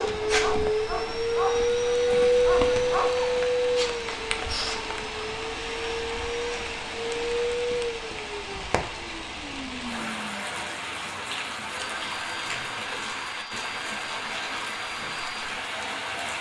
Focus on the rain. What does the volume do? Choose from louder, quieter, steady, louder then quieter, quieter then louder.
steady.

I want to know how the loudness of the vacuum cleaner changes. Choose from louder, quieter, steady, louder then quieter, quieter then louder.
quieter.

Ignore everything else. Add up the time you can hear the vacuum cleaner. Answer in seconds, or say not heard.
16 s.